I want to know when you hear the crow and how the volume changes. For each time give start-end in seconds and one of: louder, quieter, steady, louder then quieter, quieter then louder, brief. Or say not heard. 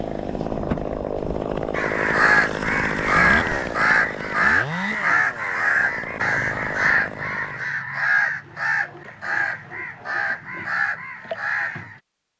1.8-12.0 quieter.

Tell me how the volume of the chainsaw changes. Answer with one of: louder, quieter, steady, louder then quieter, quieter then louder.
quieter.